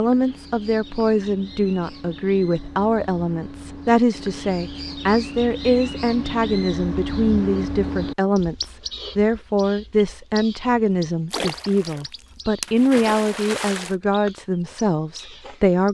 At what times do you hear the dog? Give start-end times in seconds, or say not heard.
not heard.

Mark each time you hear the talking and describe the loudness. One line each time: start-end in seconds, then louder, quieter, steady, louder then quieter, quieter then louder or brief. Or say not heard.
0.0-15.8 steady.